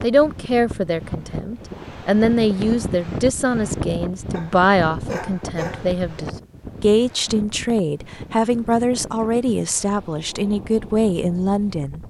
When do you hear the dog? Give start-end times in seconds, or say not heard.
4.3-6.0.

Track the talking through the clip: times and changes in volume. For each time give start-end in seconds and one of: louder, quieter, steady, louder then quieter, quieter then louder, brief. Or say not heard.
0.0-12.0 steady.